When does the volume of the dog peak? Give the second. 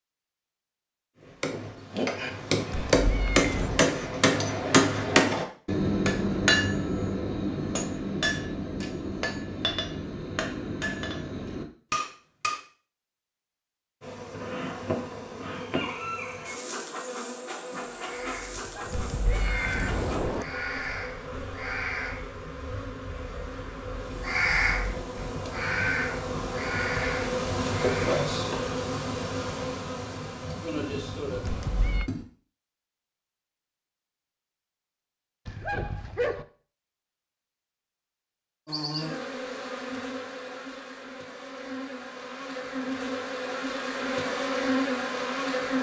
36 s.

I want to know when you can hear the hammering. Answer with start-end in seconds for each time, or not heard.
1.2-12.6.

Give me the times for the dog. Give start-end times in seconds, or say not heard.
18.6-19.5, 35.5-36.5.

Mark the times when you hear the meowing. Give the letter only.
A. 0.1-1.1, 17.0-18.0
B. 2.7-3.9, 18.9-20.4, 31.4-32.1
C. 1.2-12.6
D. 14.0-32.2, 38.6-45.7
B.